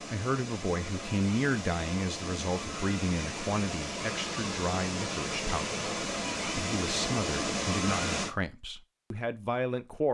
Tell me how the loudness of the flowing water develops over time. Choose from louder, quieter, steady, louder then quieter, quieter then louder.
louder.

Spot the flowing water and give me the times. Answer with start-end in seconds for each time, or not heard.
0.0-8.3.